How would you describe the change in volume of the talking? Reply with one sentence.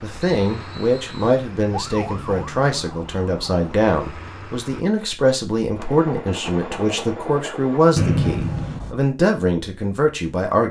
The volume of the talking stays about the same.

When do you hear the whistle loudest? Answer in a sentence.
The loudest moment of the whistle is at 8 seconds.